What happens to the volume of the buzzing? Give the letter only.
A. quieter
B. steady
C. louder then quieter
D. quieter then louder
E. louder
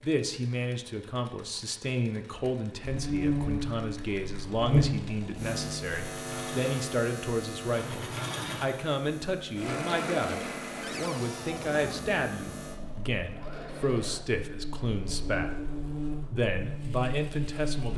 D.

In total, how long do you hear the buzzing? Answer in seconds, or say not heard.
15 s.